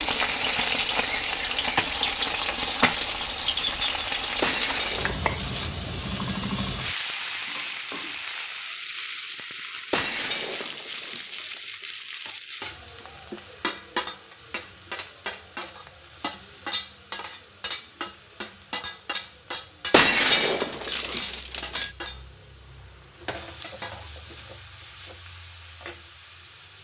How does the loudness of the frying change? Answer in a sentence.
The volume of the frying goes down.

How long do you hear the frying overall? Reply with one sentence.
The frying can be heard for 27 seconds in total.